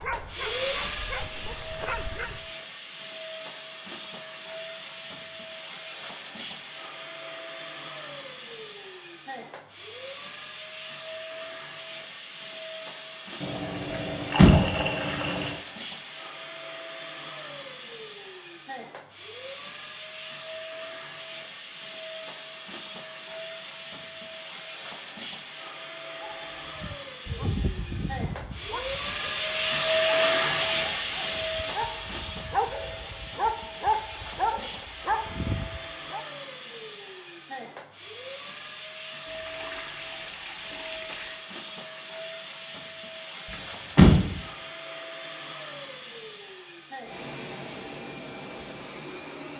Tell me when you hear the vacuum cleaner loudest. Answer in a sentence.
The loudest moment of the vacuum cleaner is at 30 seconds.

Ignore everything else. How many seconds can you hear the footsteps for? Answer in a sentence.
The footsteps can't be heard in this clip.